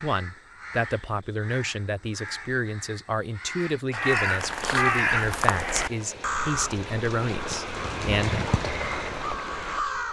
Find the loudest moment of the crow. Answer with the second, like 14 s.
5 s.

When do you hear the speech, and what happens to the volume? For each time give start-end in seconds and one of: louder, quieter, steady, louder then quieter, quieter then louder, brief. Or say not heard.
0.0-8.3 steady.